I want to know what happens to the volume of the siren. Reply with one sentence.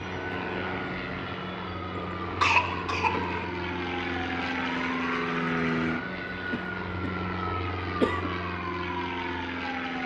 The volume of the siren stays about the same.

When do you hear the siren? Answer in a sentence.
You can hear the siren from 0.0 to 10.0 s.